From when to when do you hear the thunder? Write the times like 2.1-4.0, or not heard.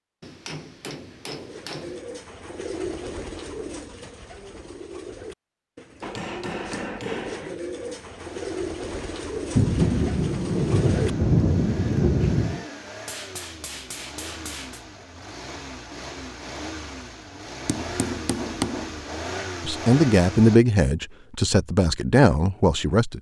9.6-12.7.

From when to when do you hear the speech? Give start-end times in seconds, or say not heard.
19.6-23.1.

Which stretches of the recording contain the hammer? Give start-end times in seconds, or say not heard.
0.2-2.0, 6.0-7.5, 13.1-14.8, 17.6-19.0.